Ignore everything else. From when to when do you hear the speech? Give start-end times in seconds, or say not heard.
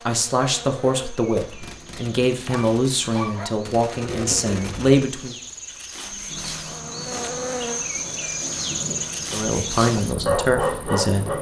0.1-5.3, 9.3-11.3.